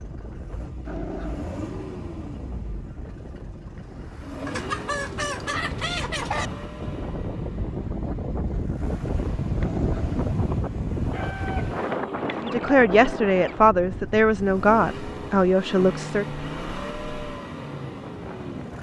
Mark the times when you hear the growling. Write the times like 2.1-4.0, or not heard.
0.8-1.6, 9.6-10.2.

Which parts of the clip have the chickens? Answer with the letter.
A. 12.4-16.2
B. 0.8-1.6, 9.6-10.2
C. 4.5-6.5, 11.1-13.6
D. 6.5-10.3
C.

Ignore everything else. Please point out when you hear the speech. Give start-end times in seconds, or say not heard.
12.4-16.2.